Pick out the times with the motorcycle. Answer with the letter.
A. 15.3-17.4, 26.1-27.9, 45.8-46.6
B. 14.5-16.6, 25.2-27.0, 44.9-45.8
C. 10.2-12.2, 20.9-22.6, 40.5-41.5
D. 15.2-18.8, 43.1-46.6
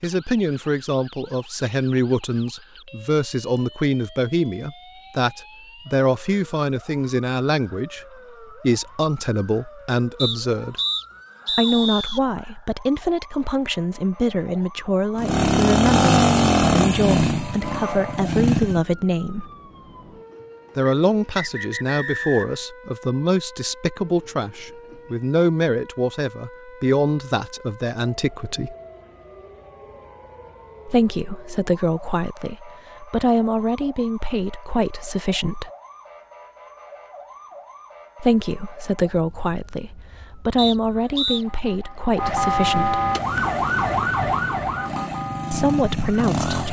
D.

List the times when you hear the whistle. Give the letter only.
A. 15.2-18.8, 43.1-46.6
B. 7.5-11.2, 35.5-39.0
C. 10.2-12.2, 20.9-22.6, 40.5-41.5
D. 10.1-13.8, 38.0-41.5
C.